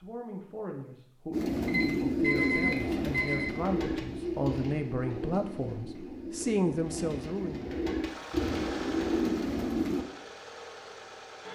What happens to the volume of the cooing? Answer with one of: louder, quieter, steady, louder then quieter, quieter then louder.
quieter then louder.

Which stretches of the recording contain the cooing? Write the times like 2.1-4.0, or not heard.
1.3-10.1.